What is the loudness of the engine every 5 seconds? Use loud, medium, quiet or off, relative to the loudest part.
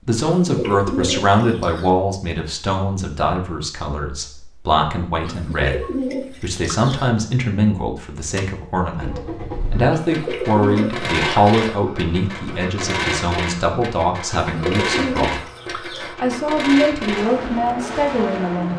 off, medium, loud, loud.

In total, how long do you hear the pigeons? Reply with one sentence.
The pigeons can be heard for 7 seconds in total.